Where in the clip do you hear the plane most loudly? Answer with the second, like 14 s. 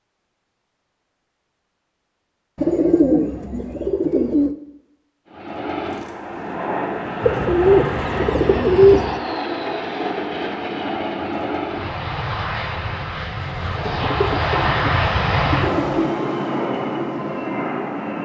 15 s.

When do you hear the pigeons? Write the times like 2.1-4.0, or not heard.
2.5-4.5, 7.2-9.2, 13.8-16.0.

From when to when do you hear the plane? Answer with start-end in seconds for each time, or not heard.
5.2-18.2.